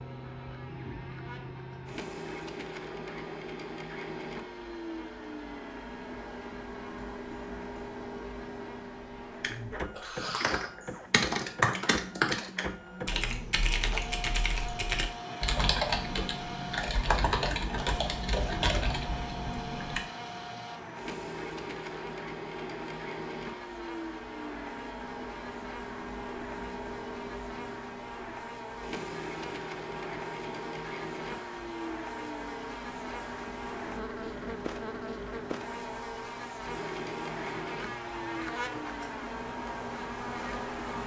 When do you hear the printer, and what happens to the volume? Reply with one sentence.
You can hear the printer from 0.0 to 41.0 s, at a steady volume.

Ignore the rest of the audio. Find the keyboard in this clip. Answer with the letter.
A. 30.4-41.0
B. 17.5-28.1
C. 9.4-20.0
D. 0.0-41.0
C.